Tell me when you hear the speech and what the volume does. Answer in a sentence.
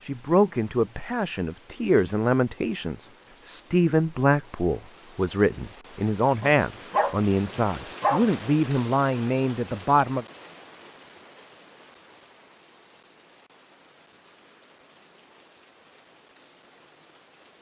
You can hear the speech from 0.0 to 10.2 s, at a steady volume.